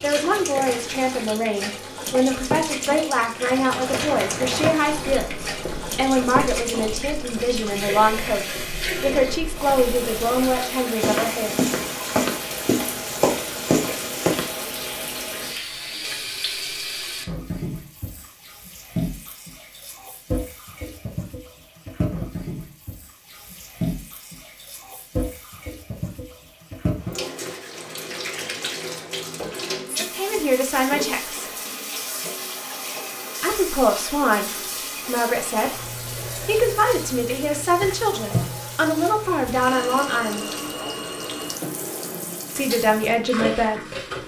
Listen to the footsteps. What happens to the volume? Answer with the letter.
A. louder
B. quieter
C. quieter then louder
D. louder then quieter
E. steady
C.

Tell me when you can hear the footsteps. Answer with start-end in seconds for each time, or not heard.
3.4-14.6.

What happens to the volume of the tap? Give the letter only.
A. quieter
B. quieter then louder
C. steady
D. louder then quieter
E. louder
C.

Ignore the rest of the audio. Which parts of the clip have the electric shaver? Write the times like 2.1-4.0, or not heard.
not heard.